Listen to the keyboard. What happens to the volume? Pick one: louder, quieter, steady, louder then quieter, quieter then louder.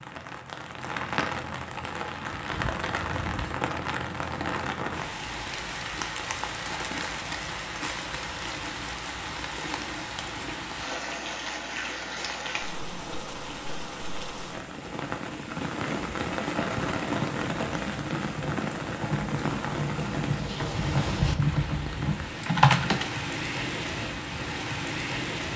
louder.